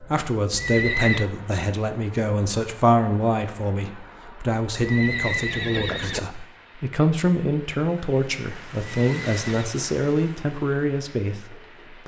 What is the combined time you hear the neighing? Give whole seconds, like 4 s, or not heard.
3 s.